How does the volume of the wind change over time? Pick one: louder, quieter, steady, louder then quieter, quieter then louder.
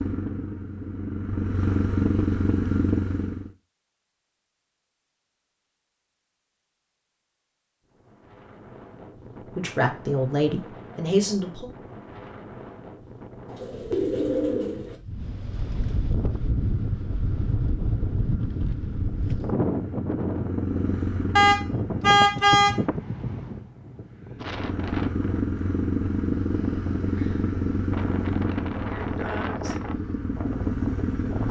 louder then quieter.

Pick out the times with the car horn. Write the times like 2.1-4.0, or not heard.
21.4-22.8.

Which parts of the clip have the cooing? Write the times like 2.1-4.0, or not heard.
13.4-14.9.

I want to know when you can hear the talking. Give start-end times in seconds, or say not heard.
9.6-11.7.